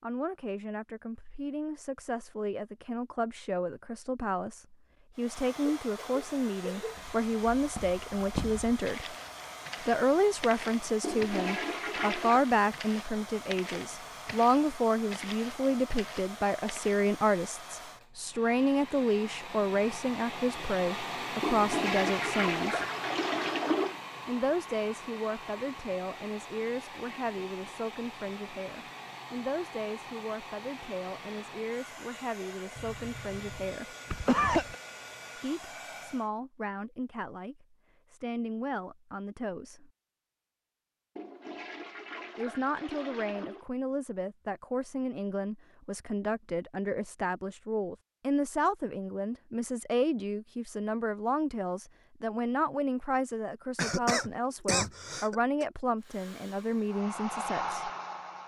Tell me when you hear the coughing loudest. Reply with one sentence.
The loudest moment of the coughing is at 34 seconds.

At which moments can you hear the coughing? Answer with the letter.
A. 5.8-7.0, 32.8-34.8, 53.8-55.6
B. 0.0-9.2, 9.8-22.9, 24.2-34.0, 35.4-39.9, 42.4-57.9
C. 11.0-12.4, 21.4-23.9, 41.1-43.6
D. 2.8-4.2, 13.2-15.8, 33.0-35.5
A.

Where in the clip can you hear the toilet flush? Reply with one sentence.
The toilet flush can be heard from 11.0 to 12.4 s, from 21.4 to 23.9 s and from 41.1 to 43.6 s.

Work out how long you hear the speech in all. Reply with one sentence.
The speech can be heard for 52 seconds in total.